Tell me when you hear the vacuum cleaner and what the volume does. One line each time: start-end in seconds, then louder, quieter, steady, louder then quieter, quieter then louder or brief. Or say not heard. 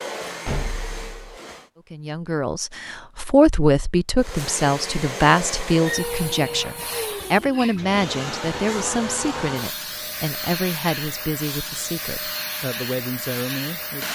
0.0-1.7 brief
4.2-14.0 steady.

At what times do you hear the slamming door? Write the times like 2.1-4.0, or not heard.
0.5-1.4.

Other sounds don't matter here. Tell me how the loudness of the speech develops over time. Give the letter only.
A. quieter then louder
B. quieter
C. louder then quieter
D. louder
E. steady
B.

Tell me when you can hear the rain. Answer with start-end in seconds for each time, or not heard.
not heard.